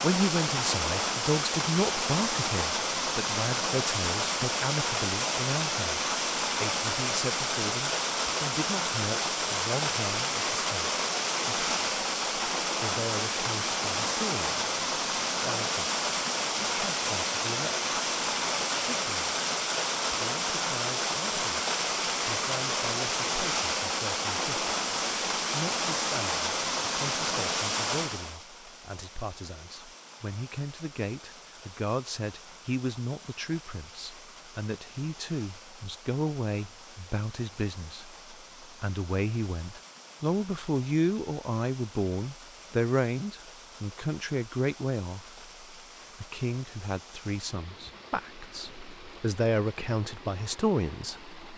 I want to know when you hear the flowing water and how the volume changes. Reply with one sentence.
You can hear the flowing water from 0.0 to 51.5 s, getting quieter.